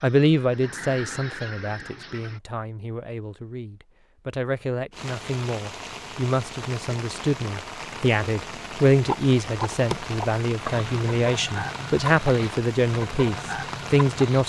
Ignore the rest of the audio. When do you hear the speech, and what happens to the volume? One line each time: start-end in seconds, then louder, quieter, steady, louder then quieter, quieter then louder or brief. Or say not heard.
0.0-14.4 louder.